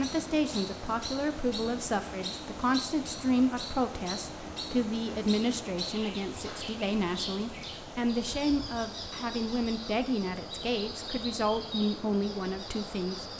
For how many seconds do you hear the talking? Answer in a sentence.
You can hear the talking for 13 seconds altogether.